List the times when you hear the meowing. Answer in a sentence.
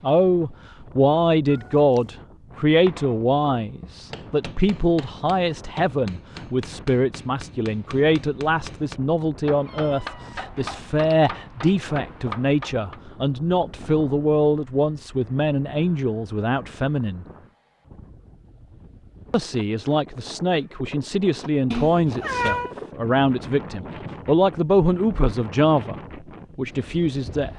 The meowing can be heard from 1.4 to 2.1 s, from 9.7 to 11.2 s and from 21.7 to 22.8 s.